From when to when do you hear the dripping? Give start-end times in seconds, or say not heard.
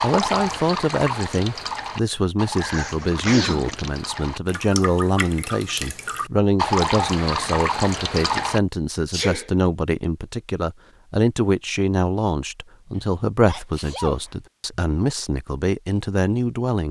0.0-8.6.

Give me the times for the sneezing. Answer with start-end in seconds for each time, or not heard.
2.6-3.9, 9.1-9.5, 12.9-14.8.